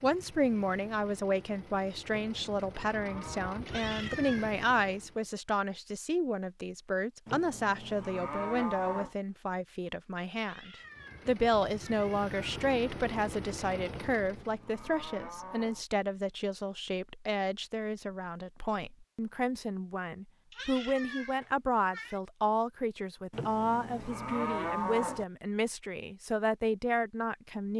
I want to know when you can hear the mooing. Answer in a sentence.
You can hear the mooing from 2.1 to 3.5 s, from 7.2 to 9.2 s, from 14.1 to 15.8 s and from 23.3 to 25.2 s.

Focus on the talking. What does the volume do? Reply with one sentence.
The loudness of the talking stays about the same.